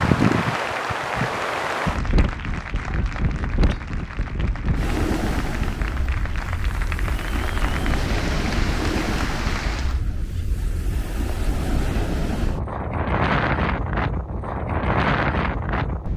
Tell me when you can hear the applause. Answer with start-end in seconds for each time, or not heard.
0.0-10.0.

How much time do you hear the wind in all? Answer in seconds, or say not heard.
16 s.